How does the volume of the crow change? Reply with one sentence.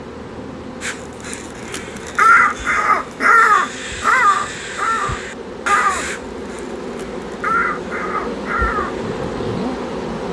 The loudness of the crow goes down.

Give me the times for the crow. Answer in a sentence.
You can hear the crow from 0.8 to 9.0 s.